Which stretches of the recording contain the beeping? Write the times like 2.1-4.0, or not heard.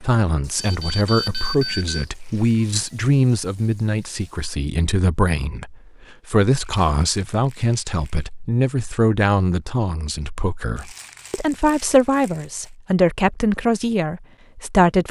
0.6-2.0.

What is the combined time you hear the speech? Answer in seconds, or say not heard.
15 s.